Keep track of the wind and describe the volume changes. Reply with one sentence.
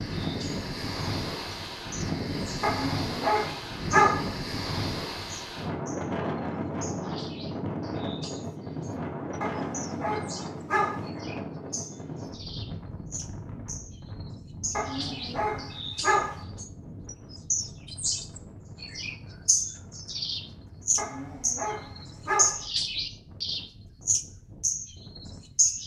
The loudness of the wind goes down.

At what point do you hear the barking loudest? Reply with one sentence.
The loudest moment of the barking is at 4 seconds.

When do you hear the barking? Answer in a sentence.
You can hear the barking from 2.6 to 4.3 s, from 9.4 to 11.1 s, from 14.7 to 16.4 s and from 20.9 to 22.6 s.